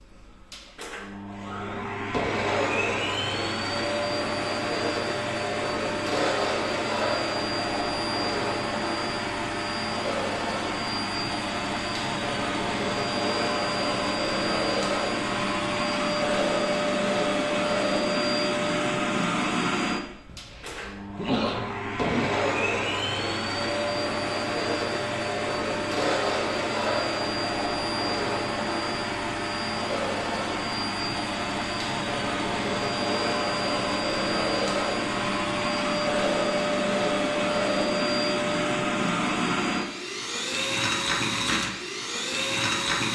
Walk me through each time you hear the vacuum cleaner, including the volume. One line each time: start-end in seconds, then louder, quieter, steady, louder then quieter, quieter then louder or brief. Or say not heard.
0.0-43.0 steady.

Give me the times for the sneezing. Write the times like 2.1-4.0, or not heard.
20.2-22.3.